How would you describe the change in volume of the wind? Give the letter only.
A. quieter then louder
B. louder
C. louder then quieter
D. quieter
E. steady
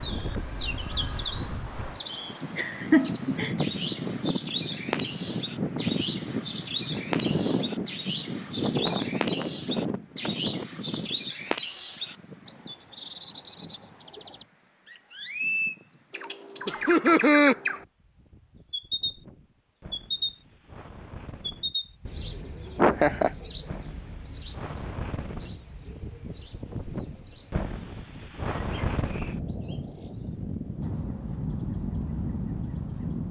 A.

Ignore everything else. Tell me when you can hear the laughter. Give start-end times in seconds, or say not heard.
2.1-3.5, 16.6-17.6, 22.8-23.3.